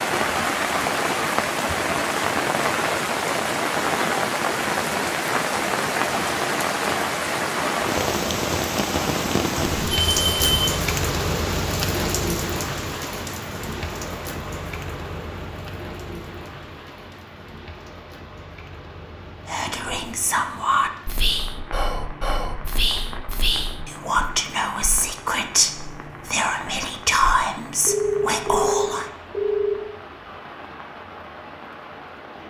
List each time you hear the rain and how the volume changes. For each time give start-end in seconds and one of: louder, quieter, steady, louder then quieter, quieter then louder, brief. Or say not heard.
0.0-32.4 quieter.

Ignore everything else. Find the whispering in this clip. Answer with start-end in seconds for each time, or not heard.
19.4-29.1.